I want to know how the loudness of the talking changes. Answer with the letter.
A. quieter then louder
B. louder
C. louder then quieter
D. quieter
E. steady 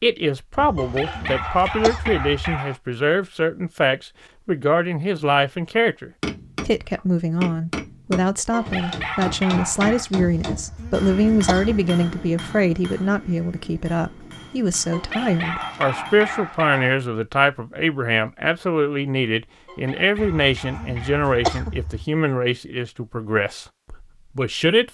E.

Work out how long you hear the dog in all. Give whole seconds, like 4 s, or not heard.
8 s.